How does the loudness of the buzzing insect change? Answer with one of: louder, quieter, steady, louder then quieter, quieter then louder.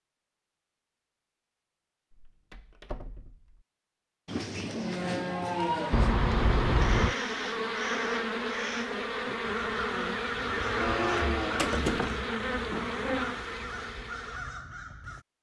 steady.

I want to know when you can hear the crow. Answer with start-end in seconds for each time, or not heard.
6.8-15.2.